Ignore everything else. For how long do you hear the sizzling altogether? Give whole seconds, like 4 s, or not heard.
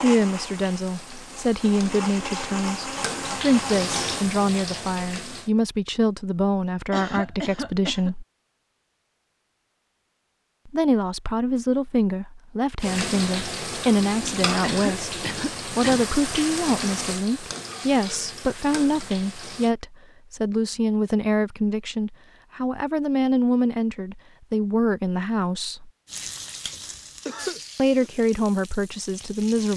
16 s.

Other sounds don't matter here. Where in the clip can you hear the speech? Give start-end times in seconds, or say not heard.
0.0-8.2, 10.7-25.9, 27.8-29.7.